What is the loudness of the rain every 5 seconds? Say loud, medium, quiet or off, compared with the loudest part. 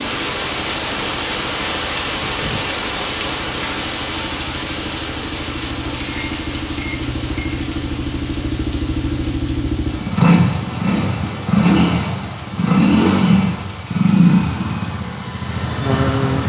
loud, medium, quiet, quiet.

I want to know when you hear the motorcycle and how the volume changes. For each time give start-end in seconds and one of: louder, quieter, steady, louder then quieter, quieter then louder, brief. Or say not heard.
0.0-16.4 louder.